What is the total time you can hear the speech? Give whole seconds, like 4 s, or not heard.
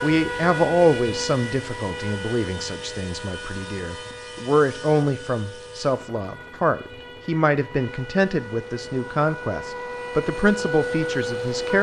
12 s.